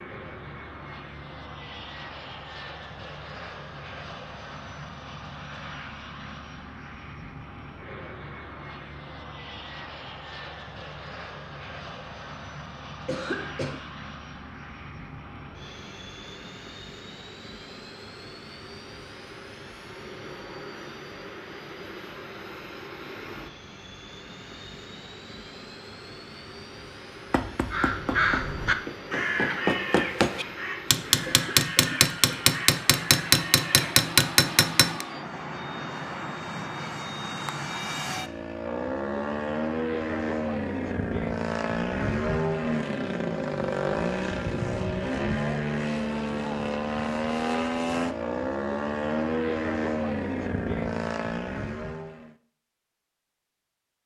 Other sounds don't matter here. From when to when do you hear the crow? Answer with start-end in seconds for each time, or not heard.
27.7-34.0.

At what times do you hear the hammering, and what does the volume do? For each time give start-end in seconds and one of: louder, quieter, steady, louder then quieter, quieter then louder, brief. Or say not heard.
27.3-35.0 louder.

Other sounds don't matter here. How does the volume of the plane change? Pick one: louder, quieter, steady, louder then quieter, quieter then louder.
louder.